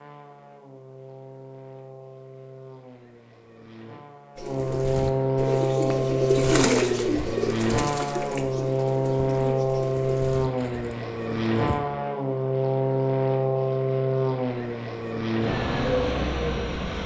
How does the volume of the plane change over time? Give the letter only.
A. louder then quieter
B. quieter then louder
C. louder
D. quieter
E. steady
C.